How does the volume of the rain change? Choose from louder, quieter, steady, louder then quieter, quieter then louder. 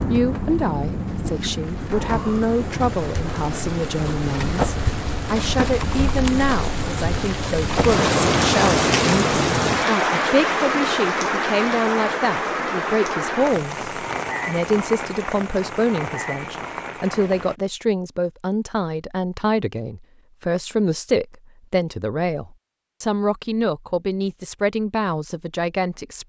louder then quieter.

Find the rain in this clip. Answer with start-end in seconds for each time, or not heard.
0.0-17.6.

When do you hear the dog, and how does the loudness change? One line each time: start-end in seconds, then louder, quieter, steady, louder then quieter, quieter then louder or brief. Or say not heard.
not heard.